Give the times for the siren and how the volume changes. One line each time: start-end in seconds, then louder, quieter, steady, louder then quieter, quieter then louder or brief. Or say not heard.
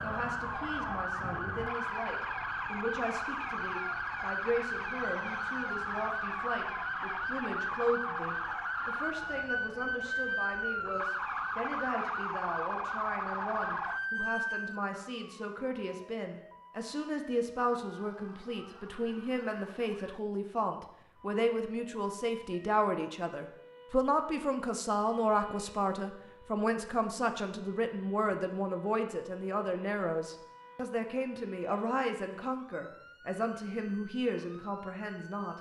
0.0-35.5 quieter.